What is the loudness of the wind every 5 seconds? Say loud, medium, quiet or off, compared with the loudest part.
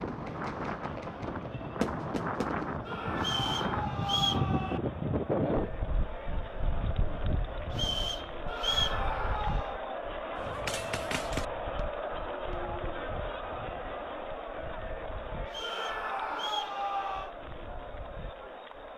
loud, loud, quiet, quiet.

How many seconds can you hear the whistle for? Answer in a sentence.
You can hear the whistle for 4 seconds altogether.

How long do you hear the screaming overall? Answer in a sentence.
You can hear the screaming for 5 seconds altogether.